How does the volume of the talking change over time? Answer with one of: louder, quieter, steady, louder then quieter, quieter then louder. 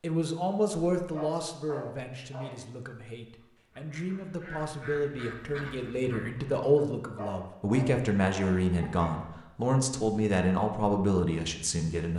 quieter then louder.